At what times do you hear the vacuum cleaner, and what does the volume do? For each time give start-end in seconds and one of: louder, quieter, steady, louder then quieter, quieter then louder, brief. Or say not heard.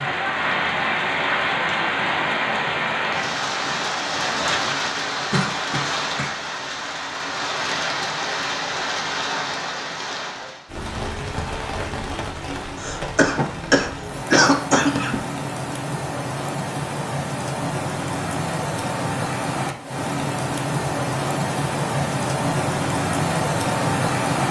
not heard.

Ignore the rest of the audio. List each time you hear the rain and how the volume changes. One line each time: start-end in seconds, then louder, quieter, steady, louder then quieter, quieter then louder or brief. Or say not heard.
0.0-24.4 quieter then louder.